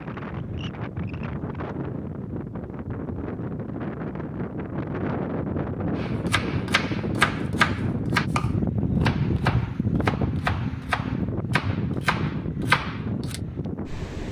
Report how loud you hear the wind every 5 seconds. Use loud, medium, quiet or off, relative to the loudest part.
medium, loud, loud.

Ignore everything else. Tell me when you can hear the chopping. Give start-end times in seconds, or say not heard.
6.0-13.4.